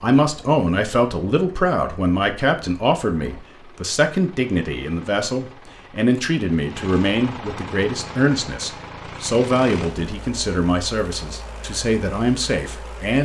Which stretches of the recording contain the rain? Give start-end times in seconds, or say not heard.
not heard.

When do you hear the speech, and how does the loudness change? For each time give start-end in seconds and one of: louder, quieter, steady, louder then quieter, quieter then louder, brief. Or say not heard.
0.0-13.2 steady.